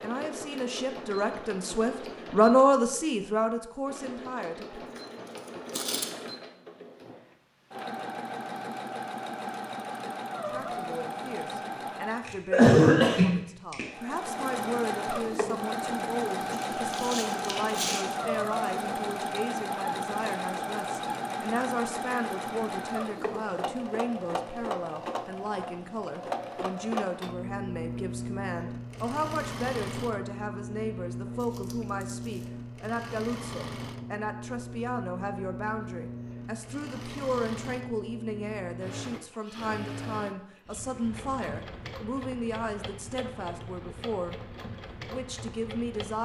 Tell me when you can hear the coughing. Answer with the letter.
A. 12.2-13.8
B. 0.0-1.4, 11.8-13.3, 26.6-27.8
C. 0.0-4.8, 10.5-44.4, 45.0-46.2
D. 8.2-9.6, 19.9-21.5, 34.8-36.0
A.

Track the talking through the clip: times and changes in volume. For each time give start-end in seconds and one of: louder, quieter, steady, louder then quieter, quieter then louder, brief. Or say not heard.
0.0-4.8 louder then quieter
10.5-44.4 steady
45.0-46.2 brief.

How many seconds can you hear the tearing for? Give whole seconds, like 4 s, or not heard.
4 s.